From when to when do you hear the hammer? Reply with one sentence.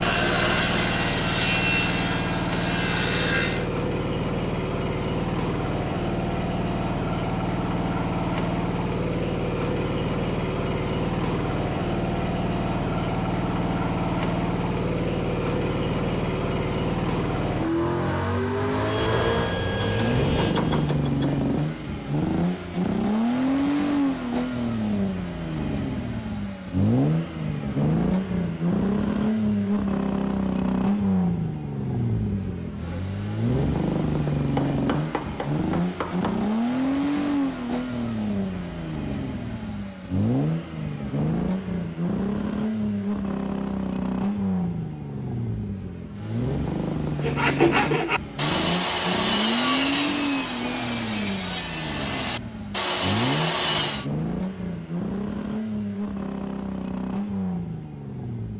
You can hear the hammer from 19.6 to 21.4 s and from 34.5 to 36.5 s.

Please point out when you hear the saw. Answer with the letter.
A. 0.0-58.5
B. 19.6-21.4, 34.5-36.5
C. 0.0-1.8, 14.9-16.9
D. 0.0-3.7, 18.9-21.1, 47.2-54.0
D.